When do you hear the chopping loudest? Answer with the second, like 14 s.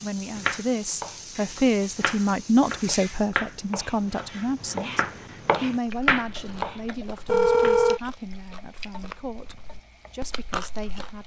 6 s.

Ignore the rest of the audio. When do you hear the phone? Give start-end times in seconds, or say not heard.
7.2-8.0.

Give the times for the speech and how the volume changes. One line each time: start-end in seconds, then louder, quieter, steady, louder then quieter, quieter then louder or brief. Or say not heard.
0.0-11.2 quieter.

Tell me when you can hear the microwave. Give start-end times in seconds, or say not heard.
not heard.